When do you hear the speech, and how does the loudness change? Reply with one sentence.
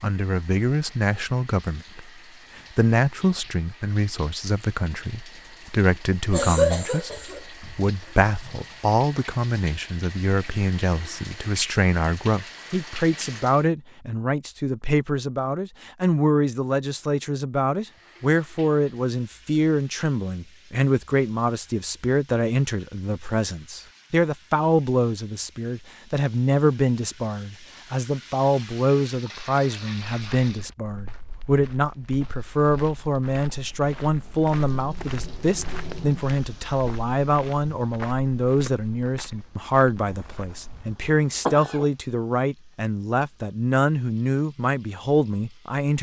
The speech can be heard from 0.0 to 45.9 s, at a steady volume.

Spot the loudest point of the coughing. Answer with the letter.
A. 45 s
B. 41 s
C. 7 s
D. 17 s
C.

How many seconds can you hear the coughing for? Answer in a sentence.
The coughing can be heard for 3 seconds in total.